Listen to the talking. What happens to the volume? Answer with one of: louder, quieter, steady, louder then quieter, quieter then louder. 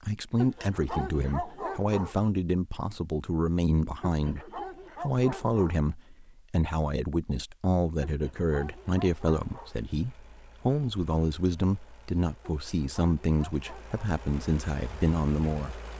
steady.